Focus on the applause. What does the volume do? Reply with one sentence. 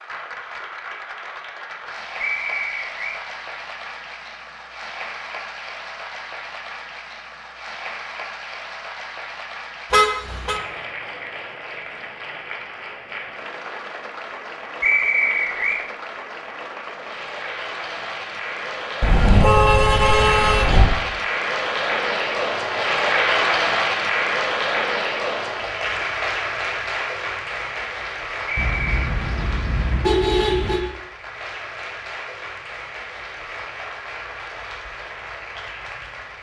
The volume of the applause goes up, then down.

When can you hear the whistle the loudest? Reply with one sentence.
The loudest moment of the whistle is at 15 seconds.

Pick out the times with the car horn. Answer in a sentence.
The car horn can be heard from 9.9 to 10.6 s, from 19.0 to 20.9 s and from 28.6 to 30.8 s.